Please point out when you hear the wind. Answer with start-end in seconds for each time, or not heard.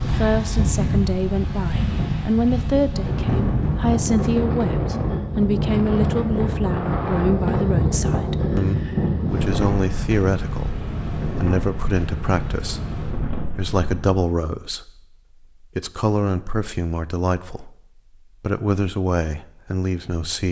0.0-14.2.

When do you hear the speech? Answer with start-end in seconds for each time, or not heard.
0.0-12.8, 13.6-15.0, 15.6-17.8, 18.4-20.4.